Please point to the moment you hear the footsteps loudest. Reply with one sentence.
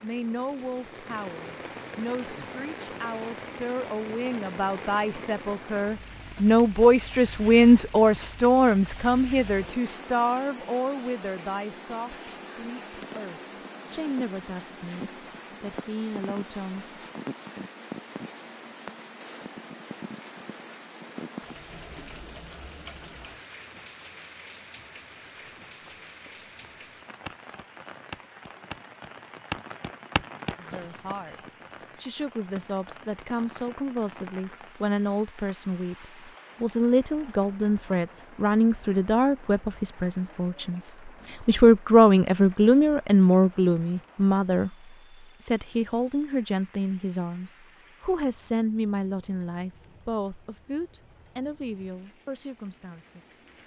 The loudest moment of the footsteps is at 30 seconds.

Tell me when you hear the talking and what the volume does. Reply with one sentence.
You can hear the talking from 0.0 to 17.0 s, getting louder then quieter; and from 30.6 to 53.4 s, getting louder then quieter.